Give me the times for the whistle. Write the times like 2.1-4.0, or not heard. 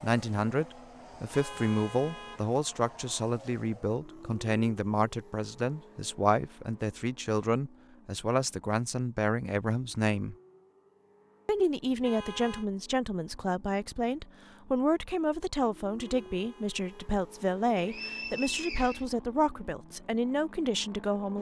17.8-19.1.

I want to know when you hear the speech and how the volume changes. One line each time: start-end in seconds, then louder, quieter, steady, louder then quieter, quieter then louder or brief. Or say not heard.
0.0-10.3 steady
11.4-21.3 steady.